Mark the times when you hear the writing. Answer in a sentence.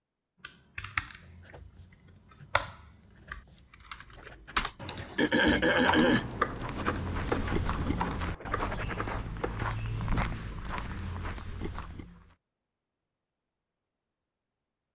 The writing can be heard from 1.1 to 9.2 s.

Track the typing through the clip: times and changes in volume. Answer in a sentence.
You can hear the typing briefly from 0.4 to 1.6 s; and from 2.3 to 9.7 s, getting louder then quieter.